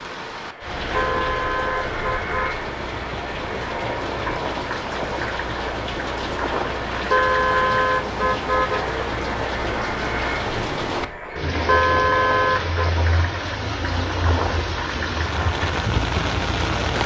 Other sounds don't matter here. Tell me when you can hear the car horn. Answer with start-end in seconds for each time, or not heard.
0.9-2.6, 7.1-8.8, 11.7-12.9.